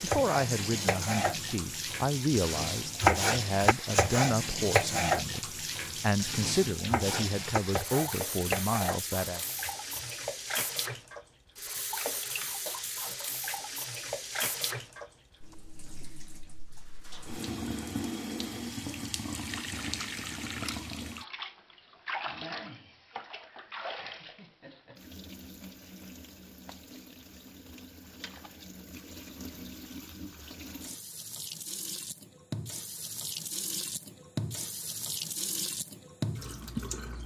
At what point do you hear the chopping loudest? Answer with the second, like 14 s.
3 s.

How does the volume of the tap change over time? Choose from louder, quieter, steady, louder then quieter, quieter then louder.
quieter then louder.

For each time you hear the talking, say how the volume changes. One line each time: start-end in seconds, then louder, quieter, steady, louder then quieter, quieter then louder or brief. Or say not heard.
0.0-9.4 steady.